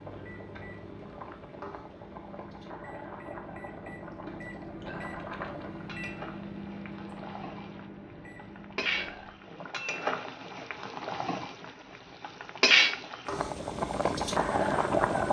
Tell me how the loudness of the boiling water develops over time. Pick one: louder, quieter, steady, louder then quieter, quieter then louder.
louder.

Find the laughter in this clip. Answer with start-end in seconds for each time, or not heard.
not heard.